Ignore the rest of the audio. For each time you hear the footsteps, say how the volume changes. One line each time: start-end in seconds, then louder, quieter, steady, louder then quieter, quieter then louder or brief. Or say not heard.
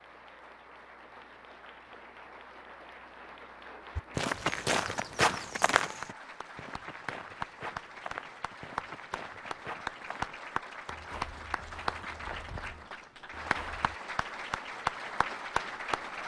4.0-13.9 quieter.